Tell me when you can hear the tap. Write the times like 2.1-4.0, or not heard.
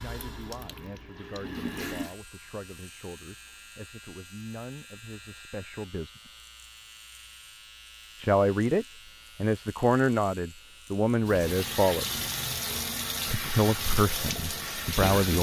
0.0-2.1, 11.2-15.3.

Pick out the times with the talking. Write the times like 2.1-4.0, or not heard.
0.0-6.4, 8.2-12.2, 13.2-15.3.